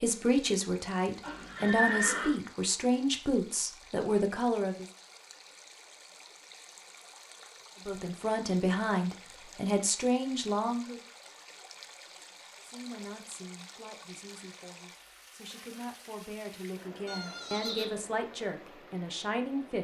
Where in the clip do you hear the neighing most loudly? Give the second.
2 s.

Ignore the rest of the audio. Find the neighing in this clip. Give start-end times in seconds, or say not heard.
1.2-2.4, 17.1-17.9.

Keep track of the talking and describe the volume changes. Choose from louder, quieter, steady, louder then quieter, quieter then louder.
quieter then louder.